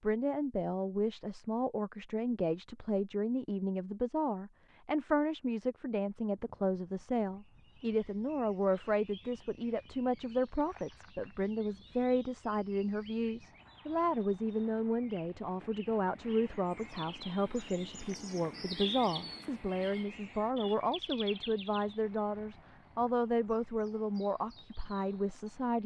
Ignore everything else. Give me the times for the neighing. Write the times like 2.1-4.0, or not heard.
not heard.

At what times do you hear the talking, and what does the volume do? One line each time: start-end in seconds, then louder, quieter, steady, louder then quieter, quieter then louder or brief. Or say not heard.
0.0-25.8 steady.